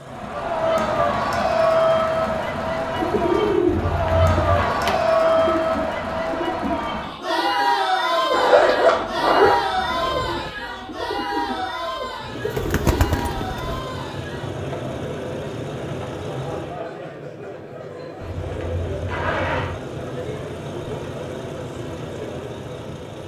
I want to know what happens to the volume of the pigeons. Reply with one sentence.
The volume of the pigeons goes down, then up.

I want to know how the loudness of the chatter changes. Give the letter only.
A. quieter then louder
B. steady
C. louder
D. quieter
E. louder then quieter
D.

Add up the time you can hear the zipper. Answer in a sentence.
You can hear the zipper for 4 seconds altogether.